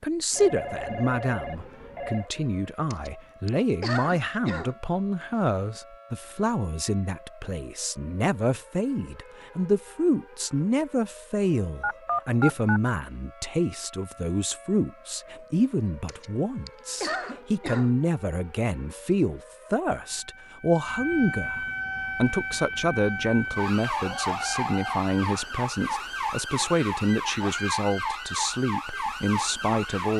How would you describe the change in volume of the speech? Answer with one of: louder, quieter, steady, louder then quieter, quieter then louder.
steady.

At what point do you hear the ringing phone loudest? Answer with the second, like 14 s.
12 s.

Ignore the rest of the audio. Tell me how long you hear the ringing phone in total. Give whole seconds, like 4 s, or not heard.
5 s.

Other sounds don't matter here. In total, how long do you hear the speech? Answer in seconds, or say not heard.
30 s.